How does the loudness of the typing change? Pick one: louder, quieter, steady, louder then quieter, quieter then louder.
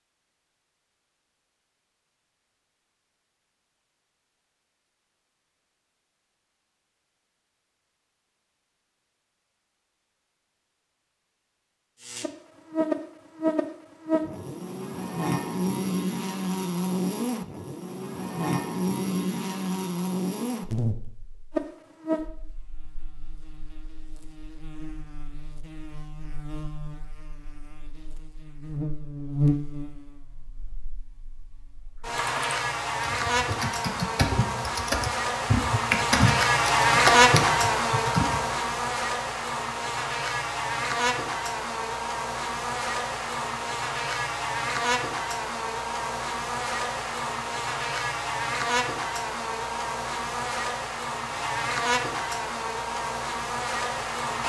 louder.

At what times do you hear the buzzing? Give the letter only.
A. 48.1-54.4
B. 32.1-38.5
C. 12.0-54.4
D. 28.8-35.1
C.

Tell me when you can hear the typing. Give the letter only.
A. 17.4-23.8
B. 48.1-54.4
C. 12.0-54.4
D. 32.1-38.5
D.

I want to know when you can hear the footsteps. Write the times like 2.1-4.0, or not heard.
not heard.